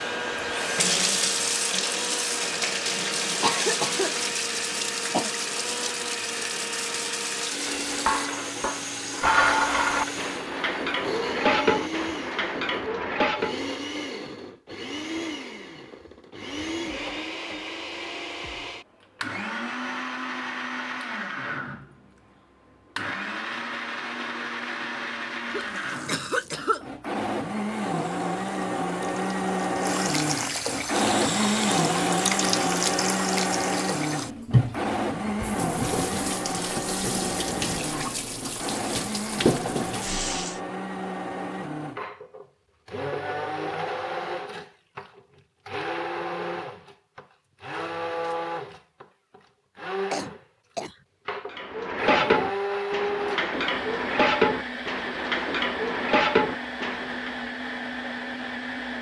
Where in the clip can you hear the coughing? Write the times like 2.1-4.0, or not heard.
3.4-5.3, 25.5-26.9, 50.1-51.0.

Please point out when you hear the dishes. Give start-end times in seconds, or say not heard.
7.8-13.6, 51.5-57.4.